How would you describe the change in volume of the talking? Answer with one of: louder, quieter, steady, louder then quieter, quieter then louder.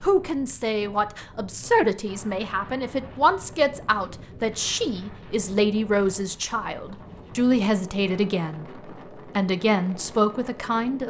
steady.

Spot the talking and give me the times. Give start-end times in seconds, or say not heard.
0.0-11.0.